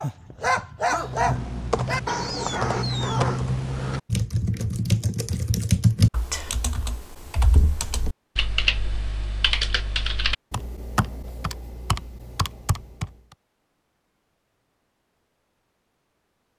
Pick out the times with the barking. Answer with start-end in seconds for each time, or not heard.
0.0-3.4.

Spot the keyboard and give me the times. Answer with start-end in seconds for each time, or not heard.
0.8-13.3.